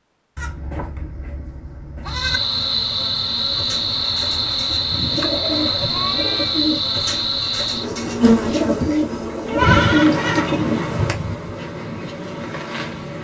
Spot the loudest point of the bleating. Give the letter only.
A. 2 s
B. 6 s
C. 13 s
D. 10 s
D.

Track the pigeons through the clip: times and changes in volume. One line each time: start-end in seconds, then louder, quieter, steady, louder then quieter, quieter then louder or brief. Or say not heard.
3.5-10.8 louder.